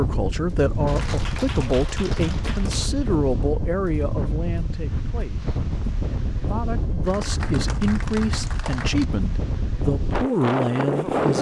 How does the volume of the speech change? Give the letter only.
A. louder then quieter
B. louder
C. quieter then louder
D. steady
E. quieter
C.